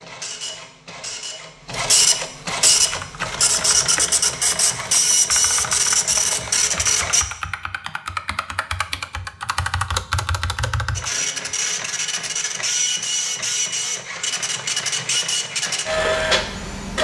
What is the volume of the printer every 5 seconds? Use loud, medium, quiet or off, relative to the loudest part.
loud, loud, medium, loud.